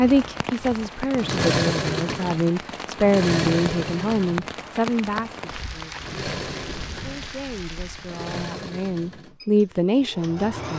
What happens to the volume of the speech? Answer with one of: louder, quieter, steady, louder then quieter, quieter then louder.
quieter then louder.